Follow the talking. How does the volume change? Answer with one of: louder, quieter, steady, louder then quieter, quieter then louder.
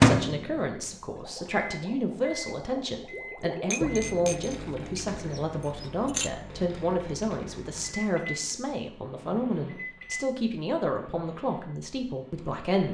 steady.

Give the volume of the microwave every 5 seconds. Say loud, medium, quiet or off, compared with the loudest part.
loud, quiet, quiet.